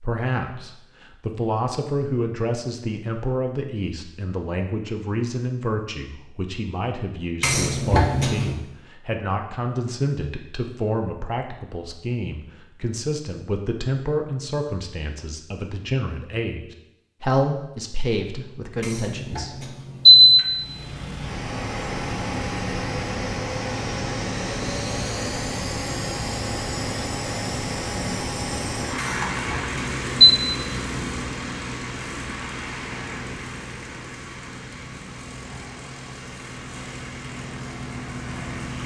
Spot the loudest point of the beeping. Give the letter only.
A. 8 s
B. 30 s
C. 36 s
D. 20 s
D.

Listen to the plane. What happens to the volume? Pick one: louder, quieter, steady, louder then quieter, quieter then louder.
quieter.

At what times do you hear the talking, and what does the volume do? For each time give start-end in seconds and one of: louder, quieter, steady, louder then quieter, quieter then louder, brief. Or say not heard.
0.0-19.8 steady.